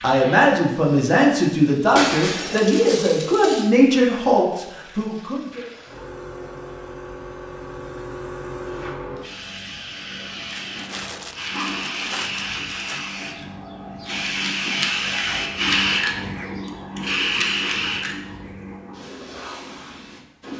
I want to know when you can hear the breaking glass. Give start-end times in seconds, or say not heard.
1.9-3.6.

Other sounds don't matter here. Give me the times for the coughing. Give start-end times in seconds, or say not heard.
not heard.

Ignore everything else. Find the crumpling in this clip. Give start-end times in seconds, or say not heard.
10.4-13.0.